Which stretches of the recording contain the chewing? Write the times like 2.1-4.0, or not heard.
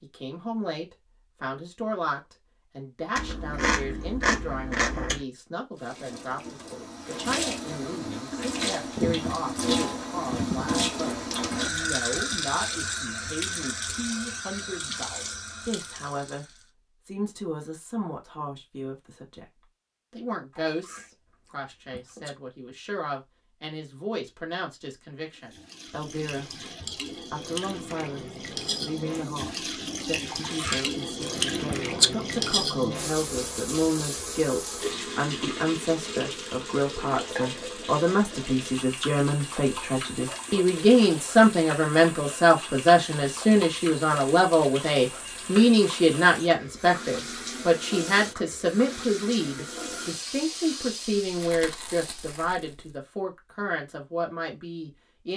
3.1-5.2, 20.6-22.3, 30.3-32.1, 51.2-52.9.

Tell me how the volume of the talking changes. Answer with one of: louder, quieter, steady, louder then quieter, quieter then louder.
louder.